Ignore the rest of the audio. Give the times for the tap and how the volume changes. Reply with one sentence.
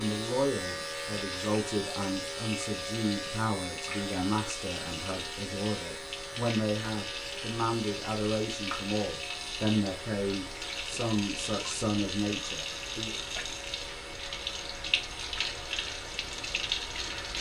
The tap can be heard from 0.0 to 17.3 s, getting louder.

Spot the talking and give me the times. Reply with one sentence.
You can hear the talking from 0.0 to 13.2 s.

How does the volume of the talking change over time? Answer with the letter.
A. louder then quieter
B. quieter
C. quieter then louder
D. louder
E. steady
E.